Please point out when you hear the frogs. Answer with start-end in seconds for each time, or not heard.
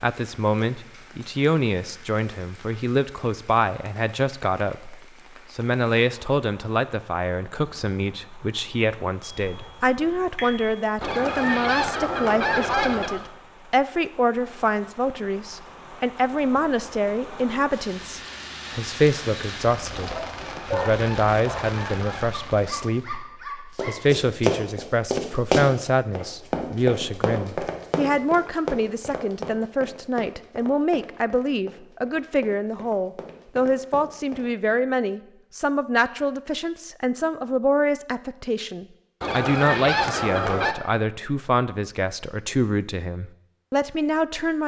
not heard.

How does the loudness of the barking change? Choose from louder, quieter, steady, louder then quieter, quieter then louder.
quieter then louder.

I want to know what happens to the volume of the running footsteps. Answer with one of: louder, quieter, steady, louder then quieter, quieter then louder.
quieter.